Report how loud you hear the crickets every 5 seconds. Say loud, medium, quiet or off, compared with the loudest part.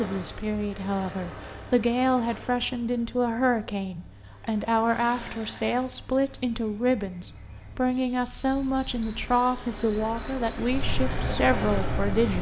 medium, loud, loud.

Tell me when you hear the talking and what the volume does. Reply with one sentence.
The talking can be heard from 0.0 to 12.3 s, at a steady volume.